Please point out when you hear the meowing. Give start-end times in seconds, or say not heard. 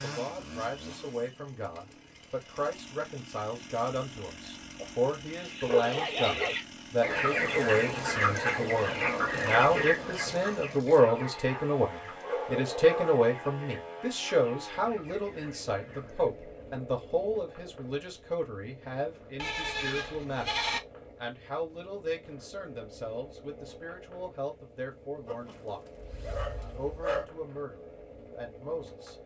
not heard.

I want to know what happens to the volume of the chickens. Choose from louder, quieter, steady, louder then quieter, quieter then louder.
quieter.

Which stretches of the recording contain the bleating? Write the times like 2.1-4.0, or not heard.
19.4-20.8.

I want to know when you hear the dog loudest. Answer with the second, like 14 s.
6 s.